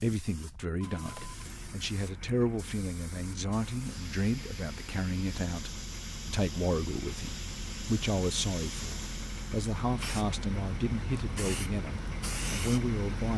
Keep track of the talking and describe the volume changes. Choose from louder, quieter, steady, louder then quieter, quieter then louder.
steady.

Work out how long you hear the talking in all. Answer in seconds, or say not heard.
13 s.